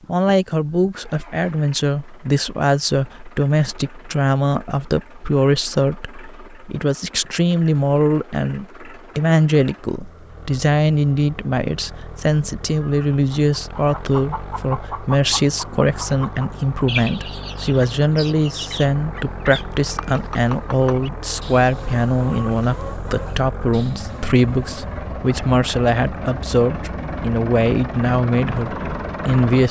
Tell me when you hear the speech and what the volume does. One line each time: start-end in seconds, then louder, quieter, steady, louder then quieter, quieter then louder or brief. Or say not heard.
0.1-29.6 steady.